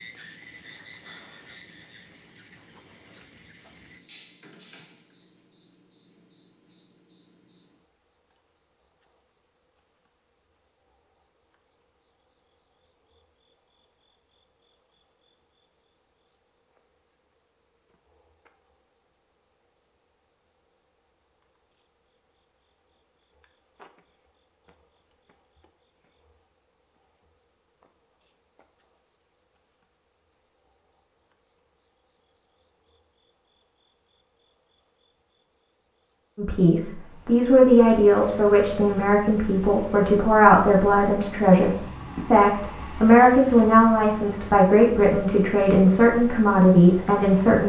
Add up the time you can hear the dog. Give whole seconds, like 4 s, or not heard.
not heard.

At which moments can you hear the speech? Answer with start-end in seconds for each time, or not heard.
36.4-47.6.